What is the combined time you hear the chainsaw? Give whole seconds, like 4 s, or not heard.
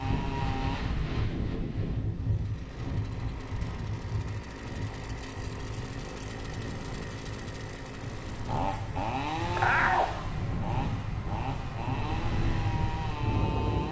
14 s.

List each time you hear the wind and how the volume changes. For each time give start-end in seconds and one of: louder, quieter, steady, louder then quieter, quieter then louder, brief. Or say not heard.
0.0-13.8 quieter then louder.